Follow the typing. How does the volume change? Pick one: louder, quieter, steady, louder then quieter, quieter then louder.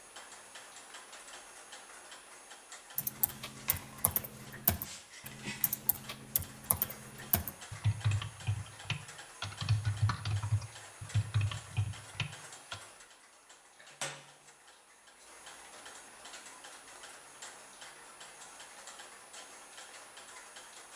louder.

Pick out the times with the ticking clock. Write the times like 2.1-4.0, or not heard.
0.0-20.9.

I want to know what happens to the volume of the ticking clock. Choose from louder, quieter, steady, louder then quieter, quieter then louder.
steady.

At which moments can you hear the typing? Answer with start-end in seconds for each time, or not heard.
3.0-12.8.